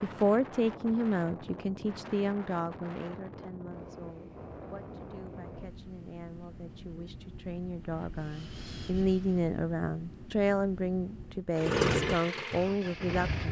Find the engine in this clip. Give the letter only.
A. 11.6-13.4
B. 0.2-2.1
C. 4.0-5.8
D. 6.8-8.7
A.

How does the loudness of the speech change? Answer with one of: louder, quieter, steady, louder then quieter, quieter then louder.
quieter then louder.